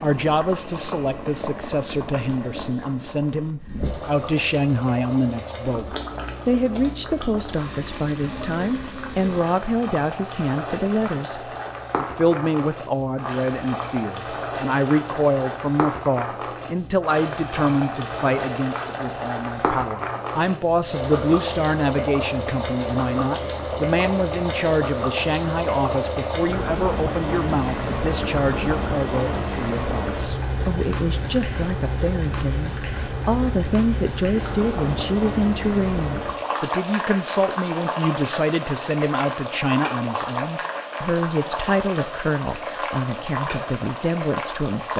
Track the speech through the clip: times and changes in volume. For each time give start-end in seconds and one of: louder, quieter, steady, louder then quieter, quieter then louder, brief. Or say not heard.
0.0-44.9 steady.